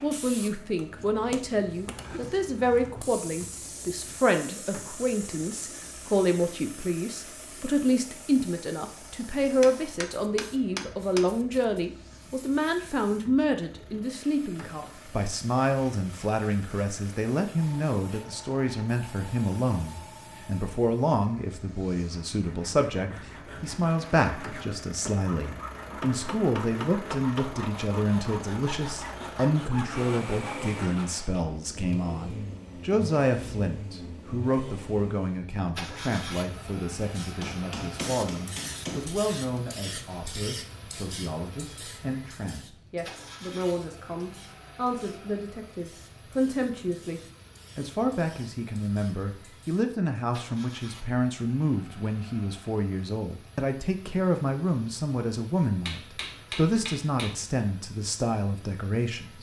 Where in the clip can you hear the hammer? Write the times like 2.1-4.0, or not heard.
9.6-11.3, 25.8-27.7, 37.4-39.0, 55.9-57.4.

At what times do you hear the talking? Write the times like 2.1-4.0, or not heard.
0.0-59.3.